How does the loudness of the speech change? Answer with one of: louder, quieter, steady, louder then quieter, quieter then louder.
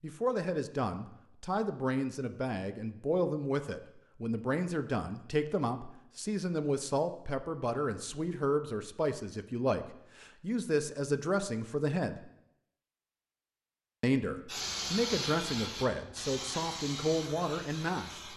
steady.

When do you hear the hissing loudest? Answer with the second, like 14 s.
15 s.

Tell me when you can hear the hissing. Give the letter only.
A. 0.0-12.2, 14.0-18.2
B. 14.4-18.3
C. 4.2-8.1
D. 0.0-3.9
B.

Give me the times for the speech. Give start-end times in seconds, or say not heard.
0.0-12.2, 14.0-18.2.